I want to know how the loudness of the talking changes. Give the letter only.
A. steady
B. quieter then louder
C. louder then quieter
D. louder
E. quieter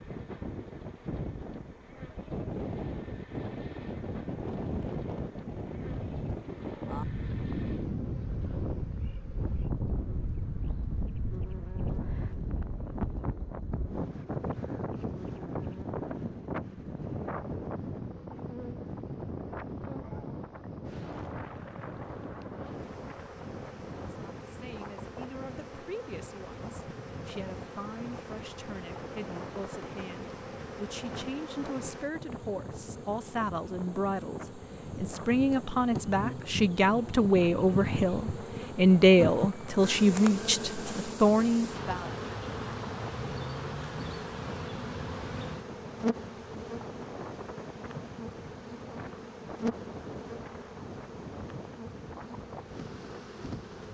D.